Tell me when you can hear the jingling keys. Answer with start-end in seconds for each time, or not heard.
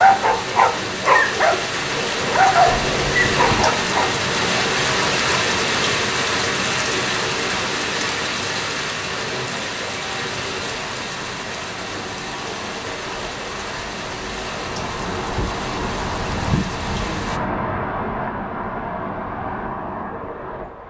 2.6-3.7.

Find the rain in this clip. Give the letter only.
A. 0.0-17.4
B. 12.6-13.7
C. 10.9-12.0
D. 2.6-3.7
A.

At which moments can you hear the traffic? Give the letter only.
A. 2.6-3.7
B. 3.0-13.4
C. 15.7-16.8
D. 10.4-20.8
D.